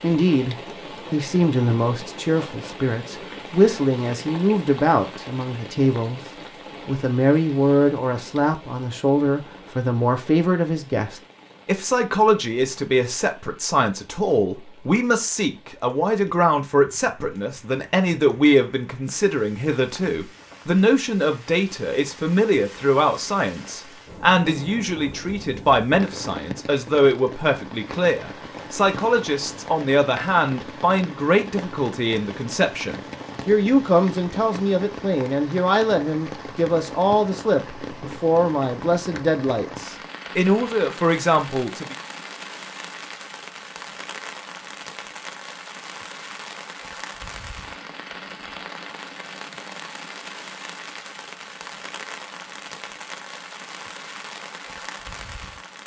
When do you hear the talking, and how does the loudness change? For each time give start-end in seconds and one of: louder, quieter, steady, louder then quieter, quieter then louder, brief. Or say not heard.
0.0-42.0 steady.